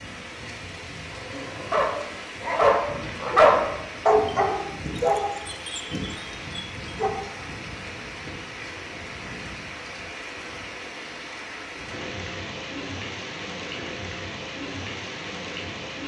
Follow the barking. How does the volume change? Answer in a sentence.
The loudness of the barking goes up, then down.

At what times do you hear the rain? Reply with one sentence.
You can hear the rain from 0.0 to 16.0 s.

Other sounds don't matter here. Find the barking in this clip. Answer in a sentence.
You can hear the barking from 1.1 to 7.1 s.